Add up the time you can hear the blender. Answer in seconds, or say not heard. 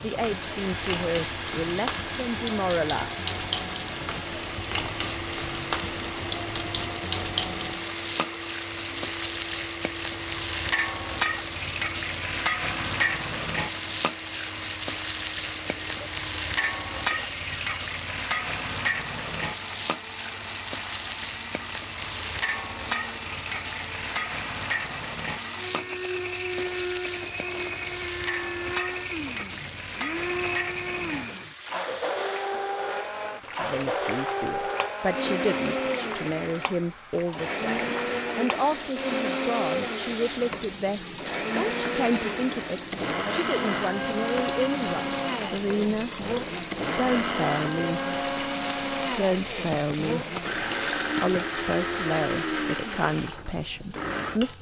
54 s.